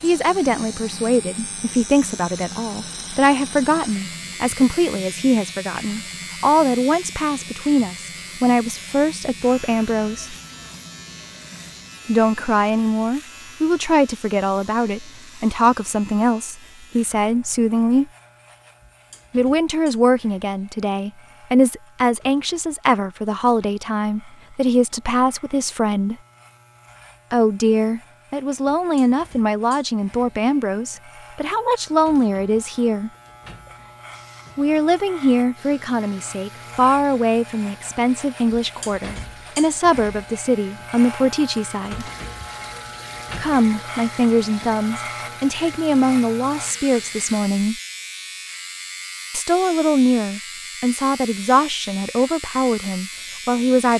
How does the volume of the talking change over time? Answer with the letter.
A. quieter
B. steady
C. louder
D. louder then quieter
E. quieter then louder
B.